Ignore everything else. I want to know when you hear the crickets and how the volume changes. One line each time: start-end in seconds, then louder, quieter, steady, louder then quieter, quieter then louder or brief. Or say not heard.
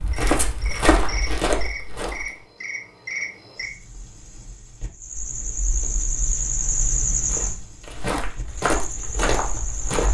0.0-10.0 louder then quieter.